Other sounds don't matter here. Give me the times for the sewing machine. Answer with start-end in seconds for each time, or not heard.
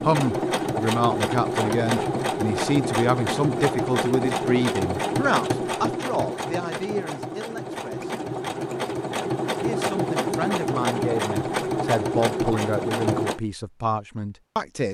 0.0-13.4.